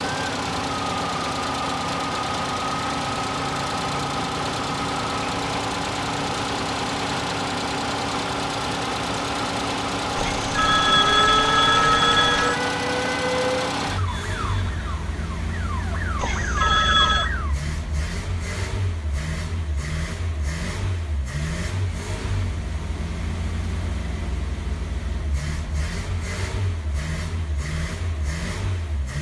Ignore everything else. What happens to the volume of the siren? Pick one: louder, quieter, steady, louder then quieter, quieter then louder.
quieter then louder.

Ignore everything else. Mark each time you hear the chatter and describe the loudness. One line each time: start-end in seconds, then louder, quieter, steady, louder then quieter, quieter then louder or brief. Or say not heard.
not heard.